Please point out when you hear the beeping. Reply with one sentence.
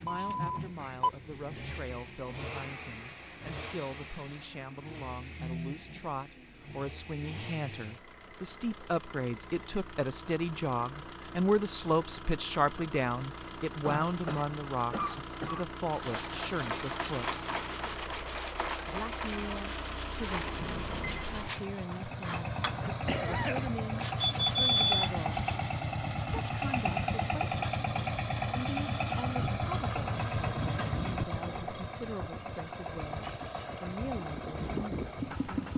The beeping can be heard from 0.1 to 1.1 s, from 20.6 to 21.2 s and from 24.2 to 25.1 s.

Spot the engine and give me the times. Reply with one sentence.
The engine can be heard from 0.0 to 35.7 s.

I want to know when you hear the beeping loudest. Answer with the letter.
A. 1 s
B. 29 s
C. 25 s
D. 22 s
C.